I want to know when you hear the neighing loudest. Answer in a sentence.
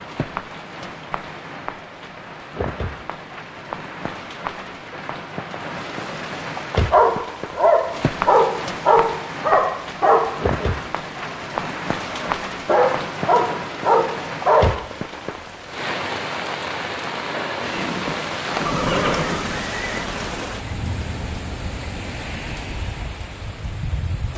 The loudest moment of the neighing is at 19 seconds.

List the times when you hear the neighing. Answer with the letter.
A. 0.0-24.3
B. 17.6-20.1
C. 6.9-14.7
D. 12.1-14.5
B.